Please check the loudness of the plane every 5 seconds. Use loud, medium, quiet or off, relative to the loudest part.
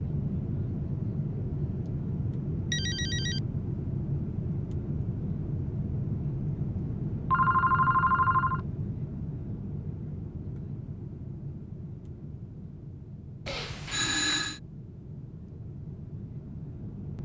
loud, loud, medium, medium.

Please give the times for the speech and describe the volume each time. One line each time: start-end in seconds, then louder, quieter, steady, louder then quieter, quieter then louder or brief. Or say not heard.
not heard.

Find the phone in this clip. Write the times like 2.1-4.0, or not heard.
2.7-3.4, 7.3-8.6, 13.4-14.6.